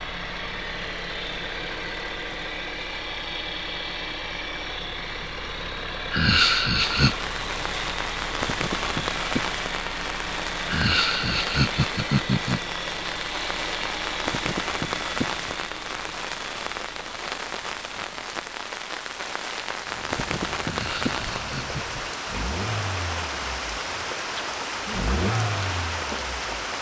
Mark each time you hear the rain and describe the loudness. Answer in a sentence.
The rain can be heard from 6.8 to 26.7 s, at a steady volume.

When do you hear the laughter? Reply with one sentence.
The laughter can be heard from 6.1 to 7.2 s, from 10.7 to 12.6 s and from 20.6 to 22.0 s.